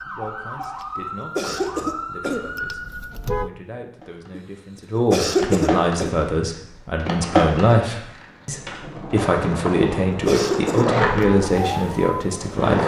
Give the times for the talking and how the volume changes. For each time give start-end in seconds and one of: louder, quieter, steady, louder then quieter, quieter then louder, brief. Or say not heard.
0.0-12.8 louder.